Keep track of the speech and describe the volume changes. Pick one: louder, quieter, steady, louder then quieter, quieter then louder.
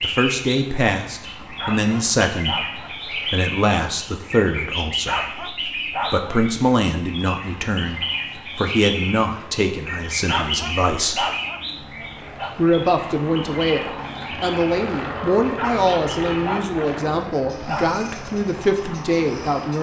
steady.